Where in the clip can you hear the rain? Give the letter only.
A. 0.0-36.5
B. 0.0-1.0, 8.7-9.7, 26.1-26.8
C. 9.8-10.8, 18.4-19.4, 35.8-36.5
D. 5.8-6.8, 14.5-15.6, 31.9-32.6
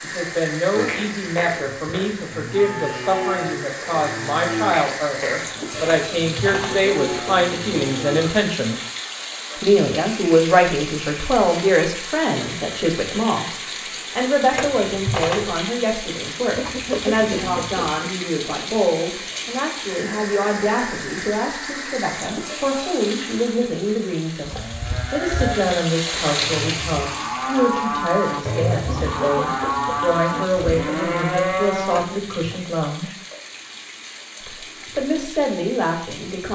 A.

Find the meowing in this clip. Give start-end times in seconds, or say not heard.
5.8-6.8, 14.5-15.6, 31.9-32.6.